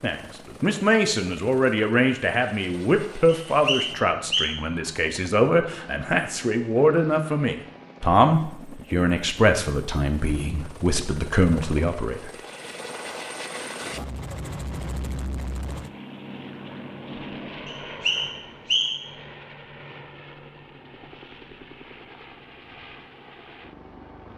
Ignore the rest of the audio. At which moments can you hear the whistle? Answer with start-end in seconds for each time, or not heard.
3.2-4.5, 17.6-19.1.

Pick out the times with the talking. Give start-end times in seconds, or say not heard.
0.0-12.3.